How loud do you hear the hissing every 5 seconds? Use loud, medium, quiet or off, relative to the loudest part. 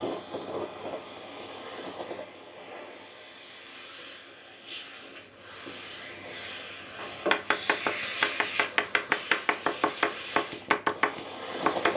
medium, loud, loud.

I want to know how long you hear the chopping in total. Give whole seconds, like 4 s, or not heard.
5 s.